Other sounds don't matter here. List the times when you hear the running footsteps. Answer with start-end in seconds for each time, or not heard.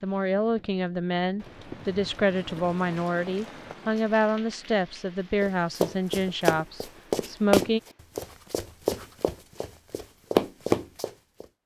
5.4-11.4.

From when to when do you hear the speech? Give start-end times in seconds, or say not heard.
0.0-7.8.